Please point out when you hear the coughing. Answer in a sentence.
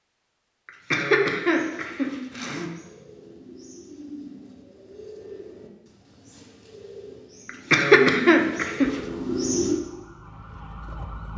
You can hear the coughing from 0.7 to 2.7 s and from 7.5 to 8.9 s.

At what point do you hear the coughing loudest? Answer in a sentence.
The volume of the coughing peaks at 8 seconds.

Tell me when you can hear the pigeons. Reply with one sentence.
The pigeons can be heard from 1.4 to 9.8 s.